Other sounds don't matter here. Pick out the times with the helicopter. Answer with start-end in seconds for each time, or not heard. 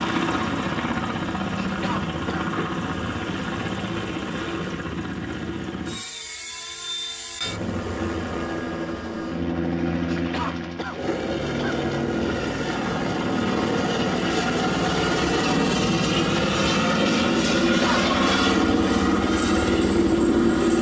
0.0-20.7.